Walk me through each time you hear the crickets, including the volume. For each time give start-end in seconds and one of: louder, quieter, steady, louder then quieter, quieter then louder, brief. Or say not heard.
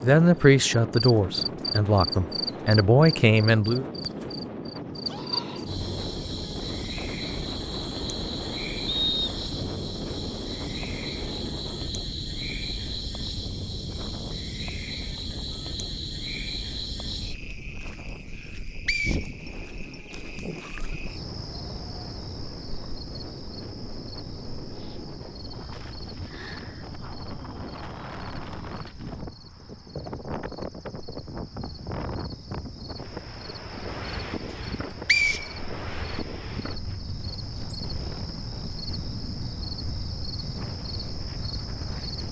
0.0-42.2 quieter then louder.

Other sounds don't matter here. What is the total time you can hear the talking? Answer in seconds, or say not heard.
4 s.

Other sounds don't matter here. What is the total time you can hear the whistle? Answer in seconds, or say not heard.
2 s.